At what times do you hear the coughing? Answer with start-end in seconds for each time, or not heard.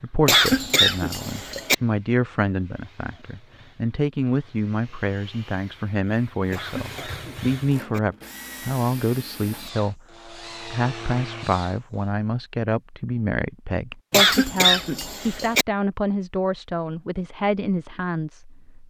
0.2-1.8, 6.5-8.0, 14.1-15.7.